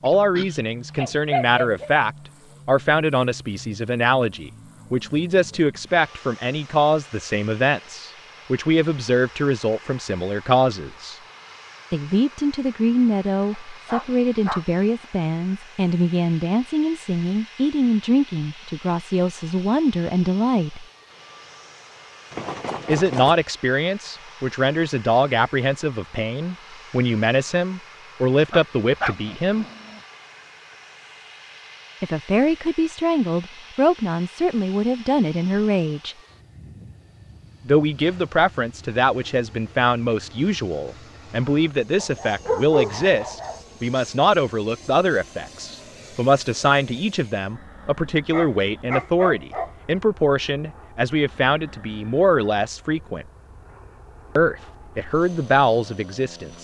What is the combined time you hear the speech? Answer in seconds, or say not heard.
49 s.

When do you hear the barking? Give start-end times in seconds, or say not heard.
0.1-1.9, 13.5-14.7, 28.5-30.0, 42.0-43.6, 48.3-49.7.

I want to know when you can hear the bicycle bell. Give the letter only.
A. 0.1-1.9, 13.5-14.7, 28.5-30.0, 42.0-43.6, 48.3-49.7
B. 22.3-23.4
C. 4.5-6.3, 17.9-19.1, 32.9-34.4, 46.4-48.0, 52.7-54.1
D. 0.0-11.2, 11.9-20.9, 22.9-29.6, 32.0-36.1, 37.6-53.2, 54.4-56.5
B.